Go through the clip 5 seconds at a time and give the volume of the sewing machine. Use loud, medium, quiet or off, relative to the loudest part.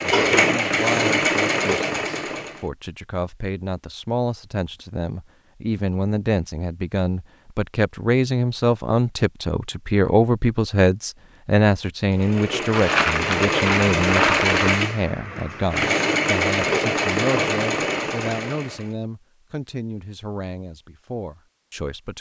loud, off, loud, loud, off.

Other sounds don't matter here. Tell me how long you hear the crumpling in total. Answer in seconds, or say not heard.
2 s.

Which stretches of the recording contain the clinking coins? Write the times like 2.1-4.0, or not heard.
not heard.